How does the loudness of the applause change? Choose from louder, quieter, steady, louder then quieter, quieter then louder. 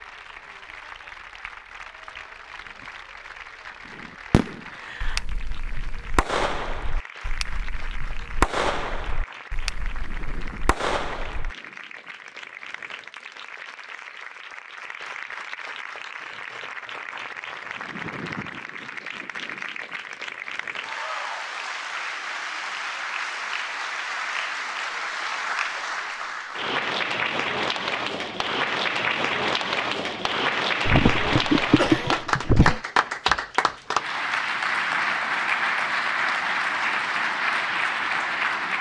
louder.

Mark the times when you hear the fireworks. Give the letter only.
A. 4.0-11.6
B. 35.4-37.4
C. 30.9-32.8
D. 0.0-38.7
A.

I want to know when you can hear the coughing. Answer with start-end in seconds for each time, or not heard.
30.9-32.8.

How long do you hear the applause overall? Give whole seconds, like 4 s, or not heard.
39 s.